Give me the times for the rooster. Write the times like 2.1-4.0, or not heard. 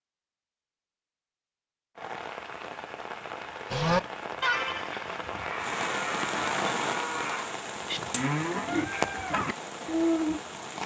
not heard.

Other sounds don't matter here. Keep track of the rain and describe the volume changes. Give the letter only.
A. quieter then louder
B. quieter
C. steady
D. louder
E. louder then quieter
E.